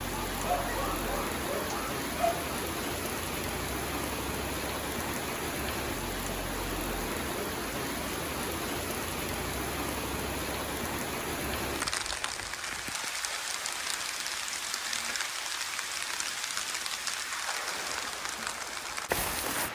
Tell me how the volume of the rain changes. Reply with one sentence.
The loudness of the rain stays about the same.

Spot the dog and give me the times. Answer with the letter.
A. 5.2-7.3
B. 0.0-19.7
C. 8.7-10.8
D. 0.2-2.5
D.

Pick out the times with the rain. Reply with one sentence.
You can hear the rain from 0.0 to 19.7 s.